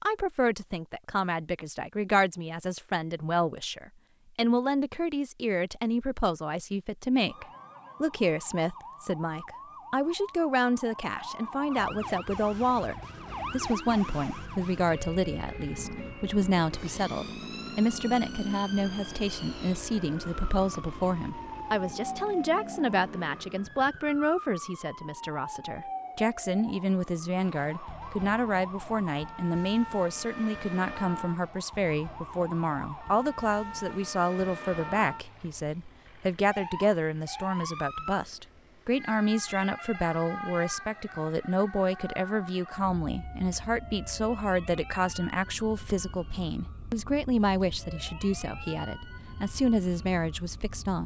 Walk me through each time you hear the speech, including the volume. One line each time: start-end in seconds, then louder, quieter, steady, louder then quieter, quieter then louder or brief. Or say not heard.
0.0-51.0 steady.